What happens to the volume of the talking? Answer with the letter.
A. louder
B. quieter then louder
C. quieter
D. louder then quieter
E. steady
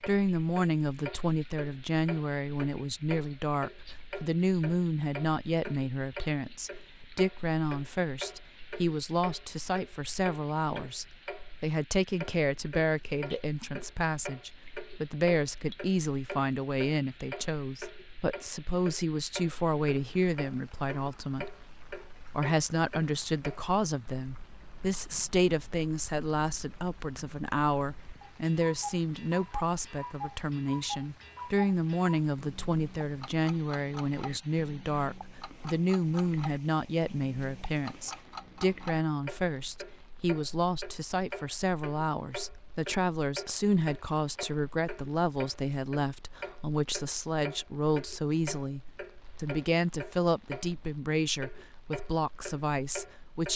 E.